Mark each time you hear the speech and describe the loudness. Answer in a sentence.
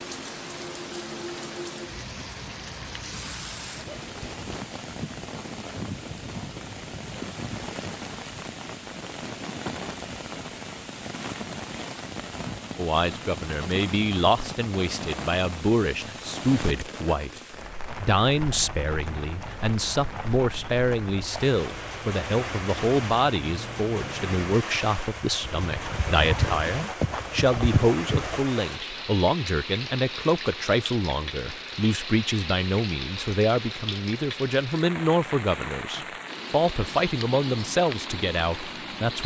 The speech can be heard from 12.8 to 39.2 s, at a steady volume.